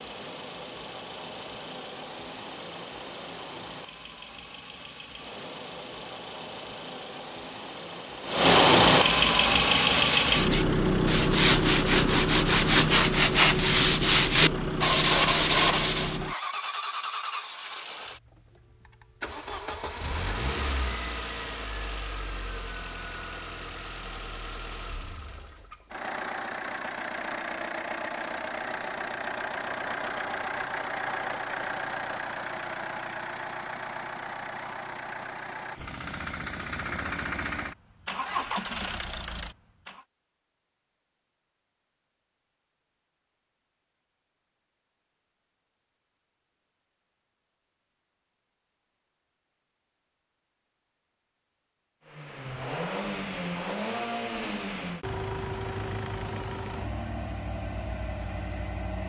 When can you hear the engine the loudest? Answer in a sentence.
The volume of the engine peaks at 9 seconds.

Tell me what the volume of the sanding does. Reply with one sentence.
The loudness of the sanding goes up.